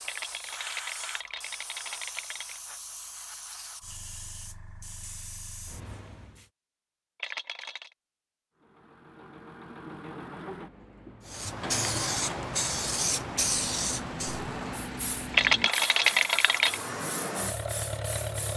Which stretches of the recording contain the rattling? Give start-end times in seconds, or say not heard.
0.1-2.6, 7.2-7.9, 15.3-16.8.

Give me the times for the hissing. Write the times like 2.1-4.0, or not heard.
0.0-6.5, 11.2-18.5.